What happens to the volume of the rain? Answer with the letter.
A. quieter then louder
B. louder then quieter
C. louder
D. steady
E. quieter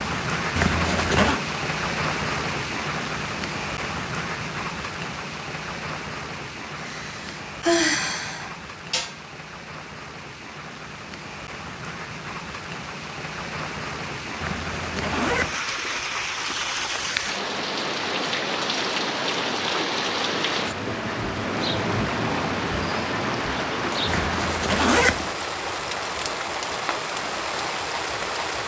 A.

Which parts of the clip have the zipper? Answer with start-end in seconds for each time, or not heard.
0.6-1.4, 14.4-15.6, 24.1-25.3.